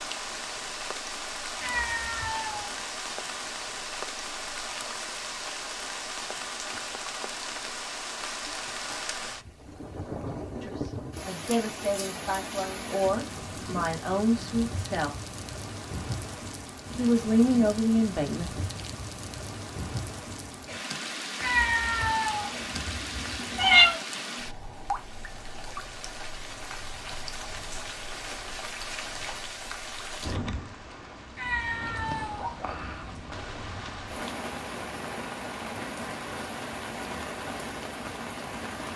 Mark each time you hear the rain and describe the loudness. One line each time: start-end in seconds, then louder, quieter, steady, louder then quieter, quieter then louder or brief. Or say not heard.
0.0-38.9 steady.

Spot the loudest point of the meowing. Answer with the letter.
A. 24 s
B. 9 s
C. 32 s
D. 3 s
A.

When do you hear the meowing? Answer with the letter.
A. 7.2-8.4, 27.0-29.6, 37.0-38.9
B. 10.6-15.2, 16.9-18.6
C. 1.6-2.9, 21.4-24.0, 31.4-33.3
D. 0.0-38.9
C.